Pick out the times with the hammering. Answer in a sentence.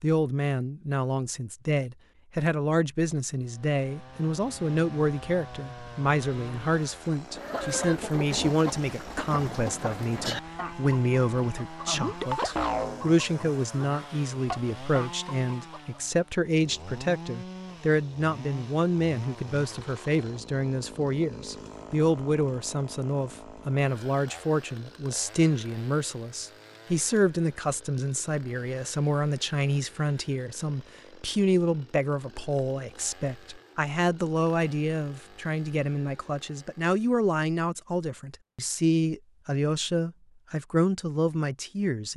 You can't hear the hammering here.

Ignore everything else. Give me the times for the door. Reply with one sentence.
You can't hear the door here.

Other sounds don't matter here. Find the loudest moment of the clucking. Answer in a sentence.
The volume of the clucking peaks at 13 seconds.